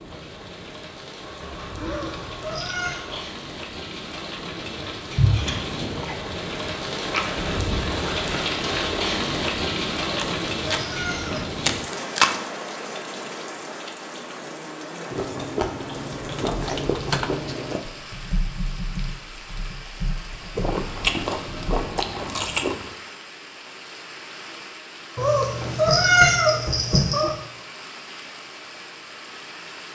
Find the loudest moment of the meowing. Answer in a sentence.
The volume of the meowing peaks at 26 seconds.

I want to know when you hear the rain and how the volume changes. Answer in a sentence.
The rain can be heard from 0.0 to 29.8 s, getting louder then quieter.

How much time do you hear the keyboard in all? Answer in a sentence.
The keyboard can be heard for 6 seconds in total.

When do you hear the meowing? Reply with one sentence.
You can hear the meowing from 1.8 to 3.0 s, from 10.1 to 11.6 s and from 25.1 to 27.4 s.